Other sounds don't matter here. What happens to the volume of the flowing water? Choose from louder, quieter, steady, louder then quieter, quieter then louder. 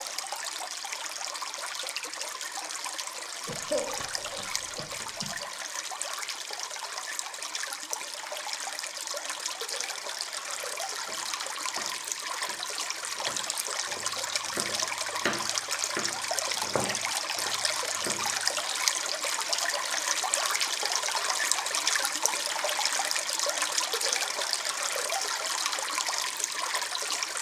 louder.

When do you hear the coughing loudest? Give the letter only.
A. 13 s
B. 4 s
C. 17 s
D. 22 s
B.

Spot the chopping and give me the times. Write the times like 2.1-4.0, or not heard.
10.5-18.3.